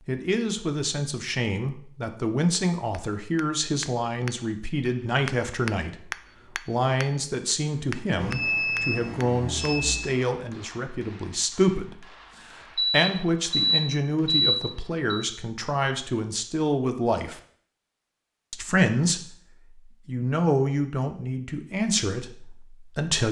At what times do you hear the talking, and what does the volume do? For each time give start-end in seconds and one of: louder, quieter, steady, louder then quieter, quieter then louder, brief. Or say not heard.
0.1-17.4 steady
18.5-23.2 quieter.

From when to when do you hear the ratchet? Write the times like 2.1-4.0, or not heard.
not heard.